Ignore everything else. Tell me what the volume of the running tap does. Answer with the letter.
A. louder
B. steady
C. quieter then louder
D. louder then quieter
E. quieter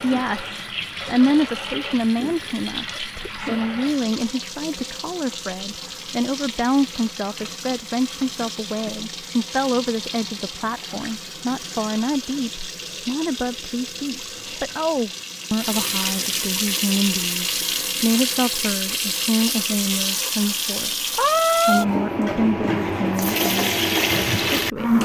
A.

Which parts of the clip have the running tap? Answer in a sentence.
The running tap can be heard from 0.0 to 25.0 s.